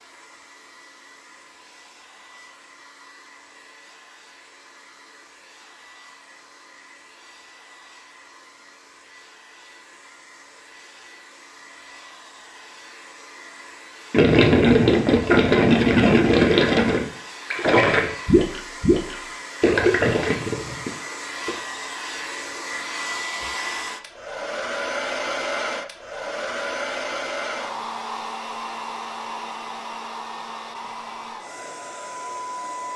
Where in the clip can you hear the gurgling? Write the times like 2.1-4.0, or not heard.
14.1-21.6.